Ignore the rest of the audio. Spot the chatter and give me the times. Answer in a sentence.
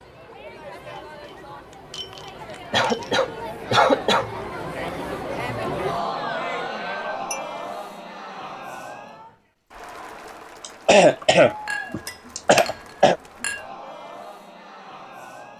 You can hear the chatter from 0.0 to 15.5 s.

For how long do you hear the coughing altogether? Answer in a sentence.
The coughing can be heard for 4 seconds in total.